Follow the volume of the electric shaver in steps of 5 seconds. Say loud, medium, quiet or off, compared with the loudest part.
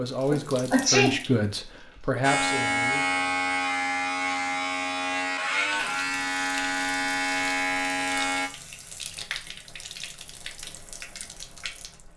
loud, loud, off.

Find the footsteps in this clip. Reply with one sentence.
The footsteps can't be heard in this clip.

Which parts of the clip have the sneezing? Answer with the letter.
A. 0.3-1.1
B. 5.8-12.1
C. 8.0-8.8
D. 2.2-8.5
A.